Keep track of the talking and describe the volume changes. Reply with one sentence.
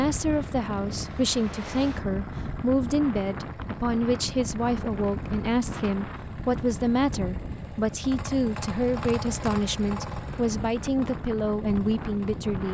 The loudness of the talking stays about the same.